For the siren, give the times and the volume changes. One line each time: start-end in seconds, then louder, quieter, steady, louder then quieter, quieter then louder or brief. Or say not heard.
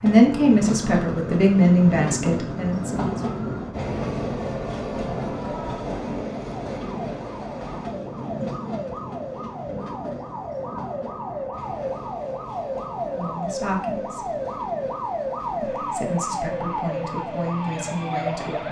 0.0-18.6 louder.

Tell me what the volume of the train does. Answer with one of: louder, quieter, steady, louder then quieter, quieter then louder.
quieter.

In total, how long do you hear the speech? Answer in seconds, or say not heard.
8 s.